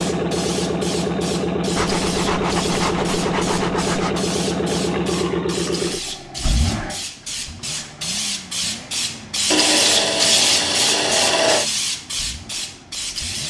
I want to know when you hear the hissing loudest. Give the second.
10 s.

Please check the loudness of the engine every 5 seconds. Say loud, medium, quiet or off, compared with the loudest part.
loud, medium, quiet.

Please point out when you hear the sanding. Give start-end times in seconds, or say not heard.
1.8-4.2, 9.5-11.7.